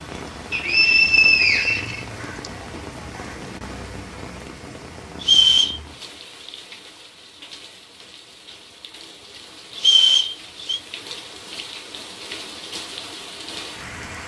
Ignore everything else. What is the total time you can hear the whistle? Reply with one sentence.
You can hear the whistle for 4 seconds altogether.